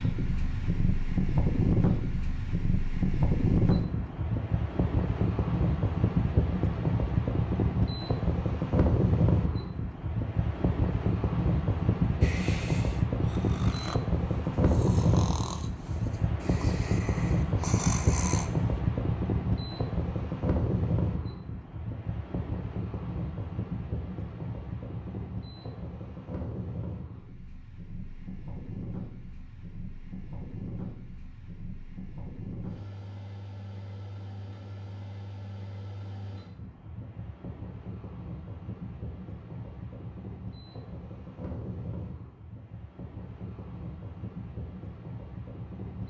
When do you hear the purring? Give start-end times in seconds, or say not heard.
not heard.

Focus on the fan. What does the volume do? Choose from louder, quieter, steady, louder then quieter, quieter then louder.
quieter.